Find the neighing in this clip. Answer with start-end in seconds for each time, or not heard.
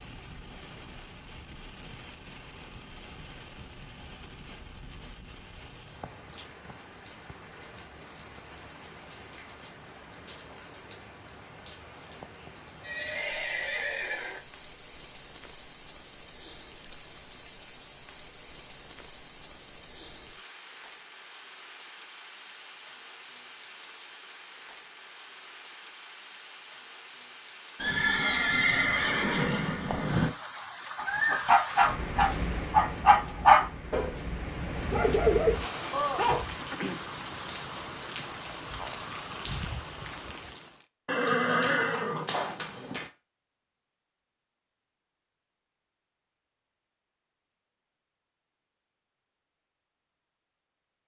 12.8-14.4, 27.8-30.4, 41.0-43.1.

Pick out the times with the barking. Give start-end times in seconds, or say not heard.
30.9-36.5.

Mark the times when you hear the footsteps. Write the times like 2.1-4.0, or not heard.
not heard.